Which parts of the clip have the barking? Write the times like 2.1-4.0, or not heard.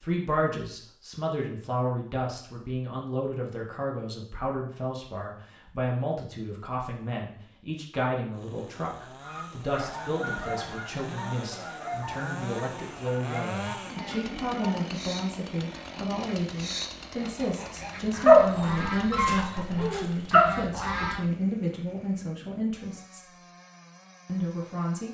18.2-20.4.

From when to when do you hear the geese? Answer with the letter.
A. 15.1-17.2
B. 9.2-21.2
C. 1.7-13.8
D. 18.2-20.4
B.